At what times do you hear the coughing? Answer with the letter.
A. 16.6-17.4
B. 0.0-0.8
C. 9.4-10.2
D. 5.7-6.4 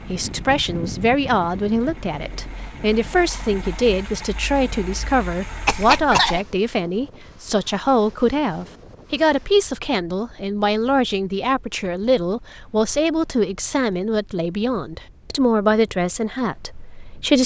D.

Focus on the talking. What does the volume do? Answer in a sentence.
The volume of the talking stays about the same.